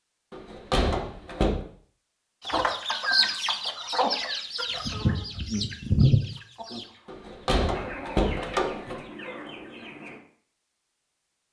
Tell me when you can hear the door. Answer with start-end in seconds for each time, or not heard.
0.3-1.6, 7.0-9.0.